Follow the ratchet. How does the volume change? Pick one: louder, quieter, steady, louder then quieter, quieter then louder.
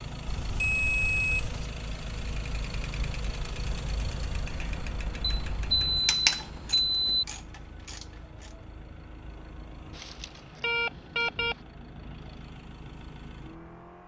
louder then quieter.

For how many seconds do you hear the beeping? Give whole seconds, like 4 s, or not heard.
5 s.